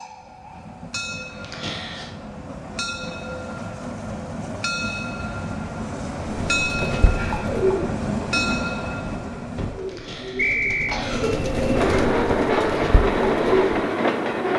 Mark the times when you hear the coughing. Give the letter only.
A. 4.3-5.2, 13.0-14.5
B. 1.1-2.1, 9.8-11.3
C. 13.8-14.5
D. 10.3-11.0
B.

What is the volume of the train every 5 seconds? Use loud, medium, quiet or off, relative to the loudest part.
medium, medium, loud.